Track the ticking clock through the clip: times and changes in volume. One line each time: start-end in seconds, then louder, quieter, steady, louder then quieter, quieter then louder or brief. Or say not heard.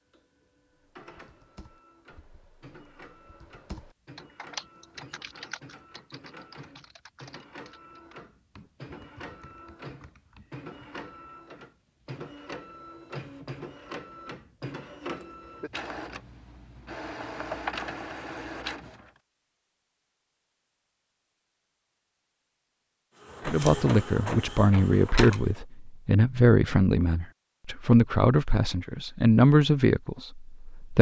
not heard.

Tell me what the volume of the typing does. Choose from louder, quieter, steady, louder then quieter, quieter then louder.
louder then quieter.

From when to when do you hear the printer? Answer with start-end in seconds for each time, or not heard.
0.0-19.1, 23.2-25.6.